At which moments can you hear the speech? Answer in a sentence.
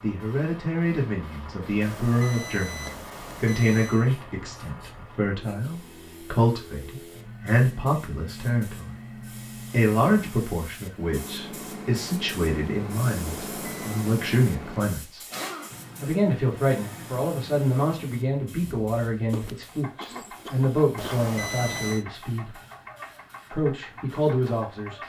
You can hear the speech from 0.0 to 8.9 s, from 9.7 to 15.2 s, from 16.0 to 22.6 s and from 23.5 to 25.0 s.